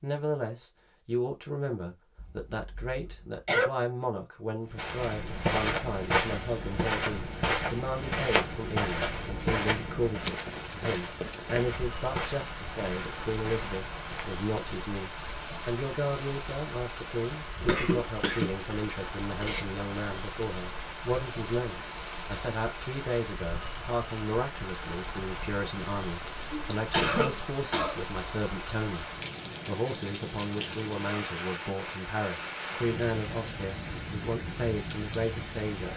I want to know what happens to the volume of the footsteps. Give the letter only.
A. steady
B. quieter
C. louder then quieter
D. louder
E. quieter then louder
B.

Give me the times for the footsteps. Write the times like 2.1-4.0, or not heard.
4.7-14.3.